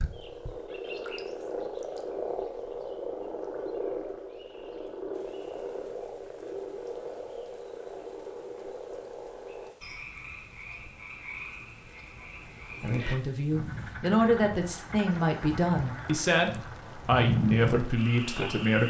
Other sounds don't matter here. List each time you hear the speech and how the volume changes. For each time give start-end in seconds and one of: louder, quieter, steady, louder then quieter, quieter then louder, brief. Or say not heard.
12.8-18.8 steady.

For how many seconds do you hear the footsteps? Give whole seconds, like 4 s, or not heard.
not heard.